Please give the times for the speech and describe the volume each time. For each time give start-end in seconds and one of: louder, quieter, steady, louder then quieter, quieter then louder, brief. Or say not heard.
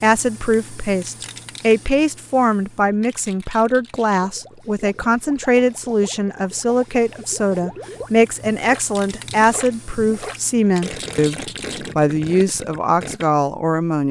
0.0-14.0 steady.